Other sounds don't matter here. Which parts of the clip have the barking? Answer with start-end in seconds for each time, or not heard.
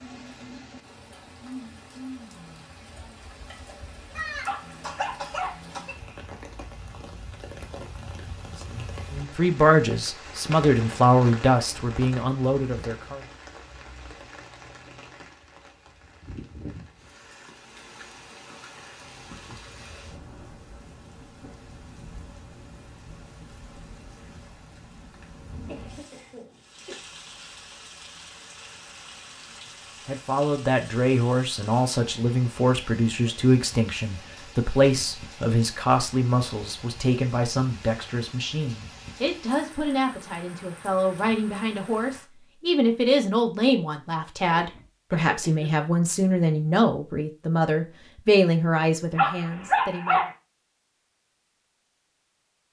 4.4-5.6, 49.1-50.3.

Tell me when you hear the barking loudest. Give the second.
50 s.